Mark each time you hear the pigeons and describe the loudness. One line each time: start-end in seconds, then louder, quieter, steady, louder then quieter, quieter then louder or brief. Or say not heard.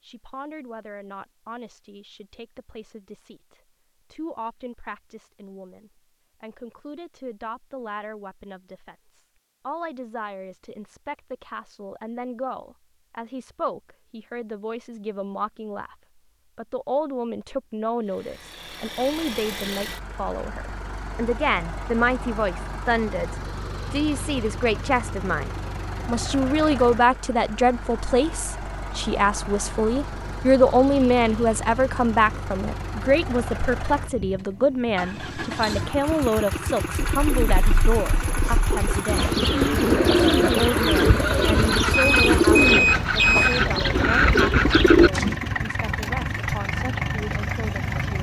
37.0-45.4 louder.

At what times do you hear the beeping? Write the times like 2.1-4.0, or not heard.
41.9-43.6.